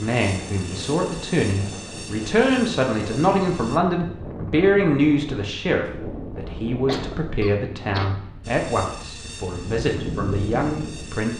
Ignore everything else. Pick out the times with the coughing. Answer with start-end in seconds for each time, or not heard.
6.8-8.2.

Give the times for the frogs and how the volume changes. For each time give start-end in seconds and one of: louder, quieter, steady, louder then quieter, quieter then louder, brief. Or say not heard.
not heard.